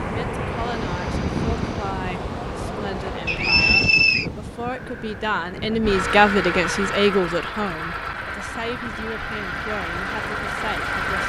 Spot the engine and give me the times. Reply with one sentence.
You can hear the engine from 5.8 to 11.2 s.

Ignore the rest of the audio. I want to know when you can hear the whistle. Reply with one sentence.
You can hear the whistle from 3.2 to 4.3 s.